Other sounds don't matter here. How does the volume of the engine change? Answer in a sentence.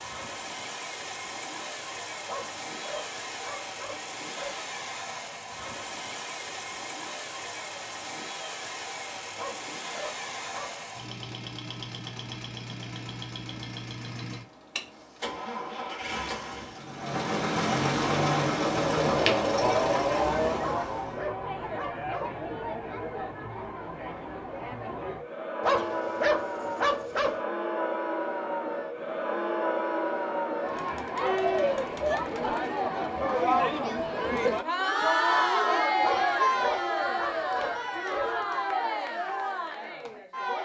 The loudness of the engine goes up.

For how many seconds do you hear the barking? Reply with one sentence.
The barking can be heard for 10 seconds in total.